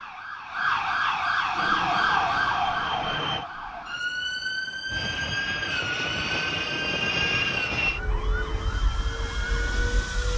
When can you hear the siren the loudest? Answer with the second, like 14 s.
2 s.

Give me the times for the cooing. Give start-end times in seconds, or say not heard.
not heard.